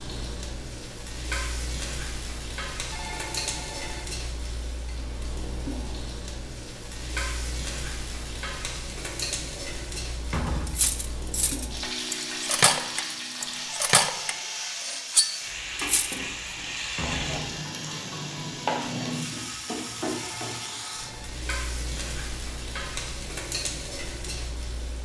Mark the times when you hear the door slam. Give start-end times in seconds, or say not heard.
10.2-10.9, 16.9-17.4.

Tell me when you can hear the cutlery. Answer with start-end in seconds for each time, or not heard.
10.7-16.2.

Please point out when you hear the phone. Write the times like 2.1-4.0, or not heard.
2.9-4.0, 13.7-14.8, 20.1-21.3.